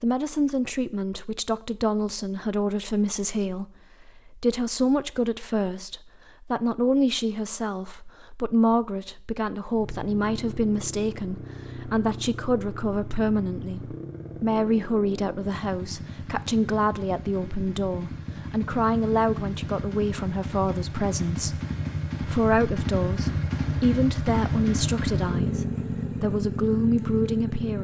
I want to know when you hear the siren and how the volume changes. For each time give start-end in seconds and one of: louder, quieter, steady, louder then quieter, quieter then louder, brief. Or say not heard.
not heard.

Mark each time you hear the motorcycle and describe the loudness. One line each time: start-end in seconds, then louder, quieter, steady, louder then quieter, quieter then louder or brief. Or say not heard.
9.7-27.7 louder.